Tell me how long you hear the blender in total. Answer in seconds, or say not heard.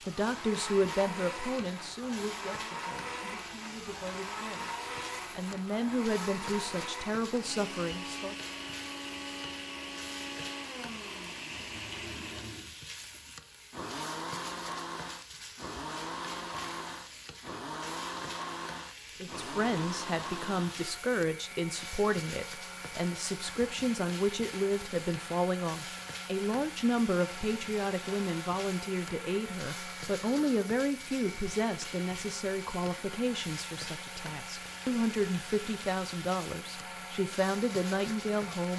39 s.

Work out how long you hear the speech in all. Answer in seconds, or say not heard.
28 s.